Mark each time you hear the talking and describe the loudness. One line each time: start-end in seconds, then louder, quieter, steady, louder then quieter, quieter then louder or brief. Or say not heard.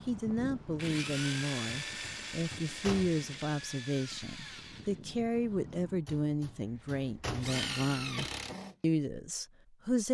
0.1-10.0 steady.